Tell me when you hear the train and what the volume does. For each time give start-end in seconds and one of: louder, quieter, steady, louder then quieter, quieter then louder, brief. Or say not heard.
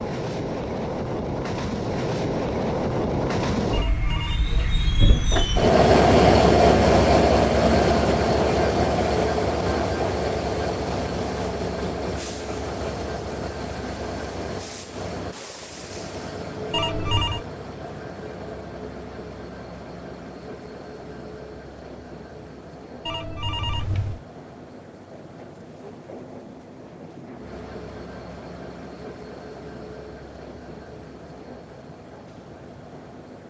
0.0-33.4 quieter.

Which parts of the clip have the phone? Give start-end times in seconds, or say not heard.
3.7-4.4, 16.7-17.4, 23.1-24.2.